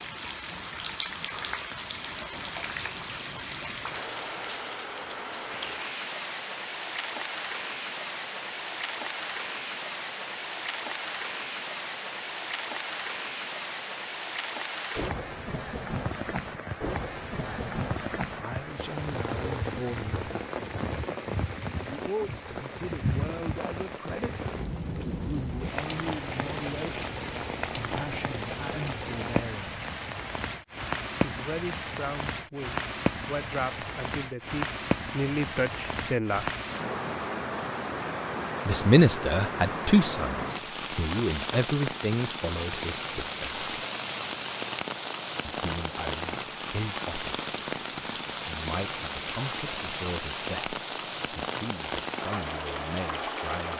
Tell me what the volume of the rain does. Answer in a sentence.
The volume of the rain stays about the same.